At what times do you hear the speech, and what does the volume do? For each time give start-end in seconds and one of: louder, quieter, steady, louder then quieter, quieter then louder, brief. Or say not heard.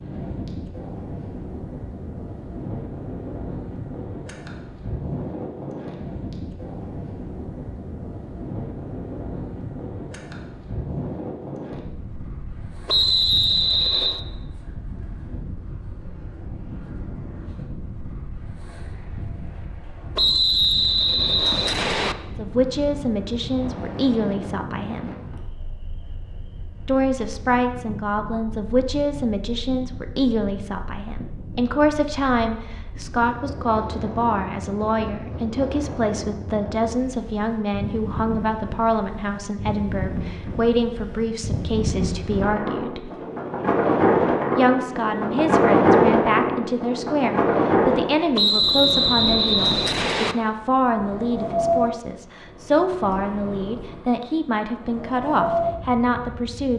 22.3-25.1 brief
26.9-43.1 steady
44.5-56.7 steady.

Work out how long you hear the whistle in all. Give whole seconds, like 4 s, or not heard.
5 s.